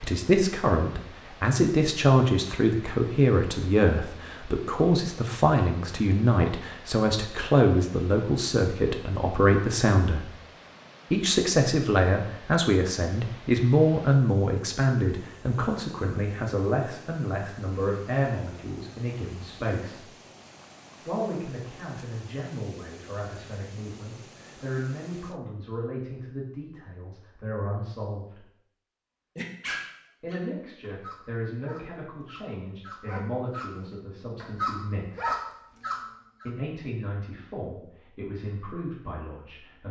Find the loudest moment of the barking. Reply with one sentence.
The loudest moment of the barking is at 35 seconds.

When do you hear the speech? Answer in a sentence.
The speech can be heard from 0.0 to 10.3 s, from 11.1 to 20.1 s, from 21.0 to 28.4 s, from 30.2 to 35.4 s and from 36.5 to 39.8 s.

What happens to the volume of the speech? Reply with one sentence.
The volume of the speech goes down.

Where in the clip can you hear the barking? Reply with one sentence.
You can hear the barking from 29.4 to 36.5 s.